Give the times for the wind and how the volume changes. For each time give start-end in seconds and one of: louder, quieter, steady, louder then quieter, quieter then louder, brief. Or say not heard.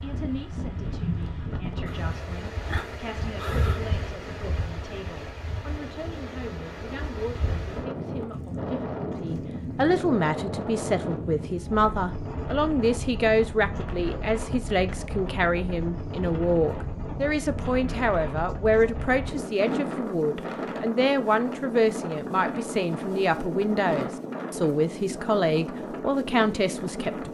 0.0-27.3 steady.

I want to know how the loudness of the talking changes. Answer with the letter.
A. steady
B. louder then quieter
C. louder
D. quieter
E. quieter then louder
C.